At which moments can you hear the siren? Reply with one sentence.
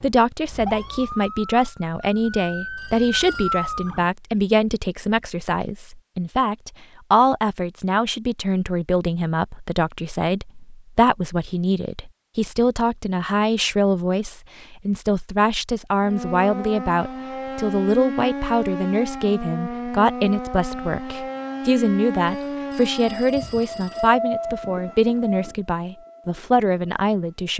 You can hear the siren from 0.0 to 4.1 s and from 16.0 to 27.4 s.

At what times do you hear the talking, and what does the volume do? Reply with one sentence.
You can hear the talking from 0.0 to 27.5 s, at a steady volume.